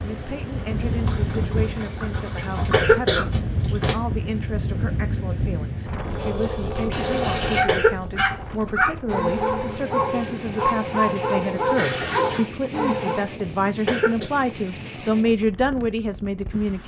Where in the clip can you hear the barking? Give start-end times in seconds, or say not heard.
6.0-13.3.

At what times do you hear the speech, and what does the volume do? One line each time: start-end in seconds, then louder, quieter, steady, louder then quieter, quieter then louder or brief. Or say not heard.
0.0-16.8 louder.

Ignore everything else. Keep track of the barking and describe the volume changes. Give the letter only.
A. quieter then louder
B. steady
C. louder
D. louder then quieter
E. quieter
B.